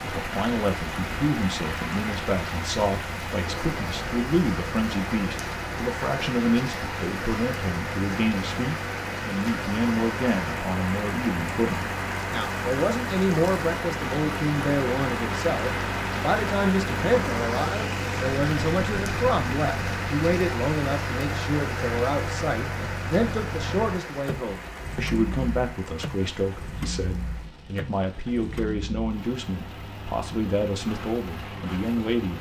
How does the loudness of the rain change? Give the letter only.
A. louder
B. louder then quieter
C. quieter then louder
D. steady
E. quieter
E.